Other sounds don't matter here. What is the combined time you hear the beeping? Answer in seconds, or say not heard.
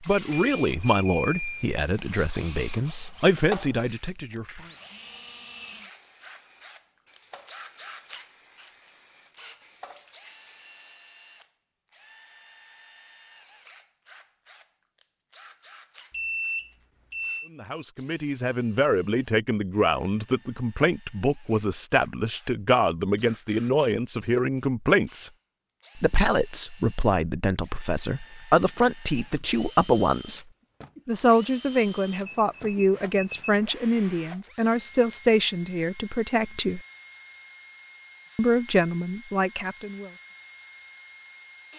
5 s.